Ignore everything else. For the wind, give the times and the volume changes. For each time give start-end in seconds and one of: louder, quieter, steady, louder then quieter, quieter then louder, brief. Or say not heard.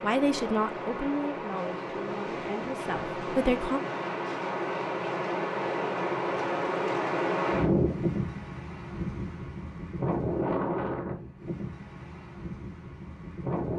0.0-13.7 louder then quieter.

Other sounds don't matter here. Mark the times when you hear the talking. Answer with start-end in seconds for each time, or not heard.
0.0-3.8.